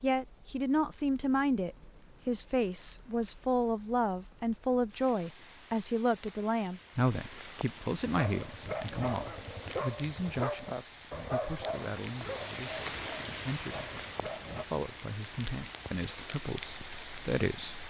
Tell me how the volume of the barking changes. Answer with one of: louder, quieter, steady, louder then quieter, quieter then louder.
quieter.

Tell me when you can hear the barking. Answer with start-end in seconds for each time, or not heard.
8.0-14.7.